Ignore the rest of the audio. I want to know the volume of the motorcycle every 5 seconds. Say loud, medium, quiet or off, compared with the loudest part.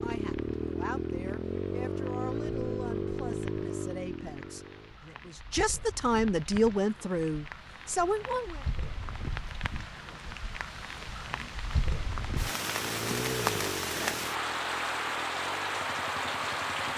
loud, off, medium, quiet.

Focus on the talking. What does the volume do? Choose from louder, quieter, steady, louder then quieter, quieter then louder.
louder.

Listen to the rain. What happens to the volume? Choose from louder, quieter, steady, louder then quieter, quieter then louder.
louder.